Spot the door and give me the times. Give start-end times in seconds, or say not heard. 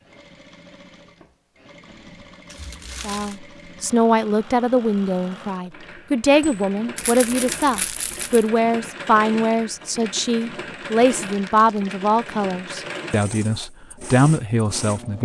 not heard.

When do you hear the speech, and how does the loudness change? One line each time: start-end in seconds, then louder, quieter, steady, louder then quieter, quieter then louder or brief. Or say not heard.
3.0-15.1 steady.